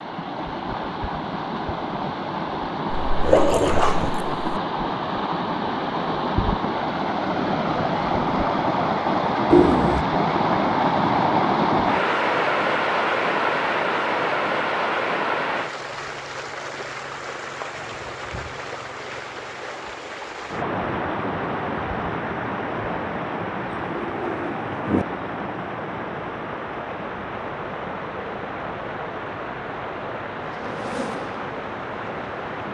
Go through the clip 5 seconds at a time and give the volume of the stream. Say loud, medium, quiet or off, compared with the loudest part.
medium, loud, loud, medium, medium, medium, medium.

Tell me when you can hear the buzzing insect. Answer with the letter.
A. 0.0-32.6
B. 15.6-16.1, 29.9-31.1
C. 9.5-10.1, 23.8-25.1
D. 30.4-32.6
D.